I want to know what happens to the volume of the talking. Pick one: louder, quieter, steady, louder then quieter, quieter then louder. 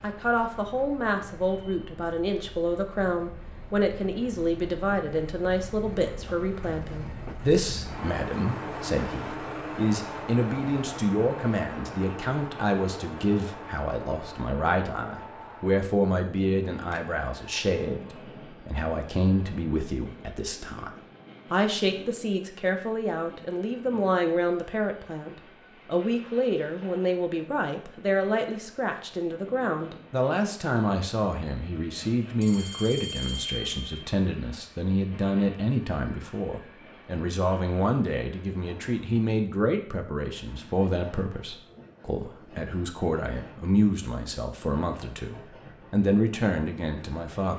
steady.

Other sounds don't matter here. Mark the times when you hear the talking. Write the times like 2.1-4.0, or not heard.
0.0-20.9, 21.5-47.5.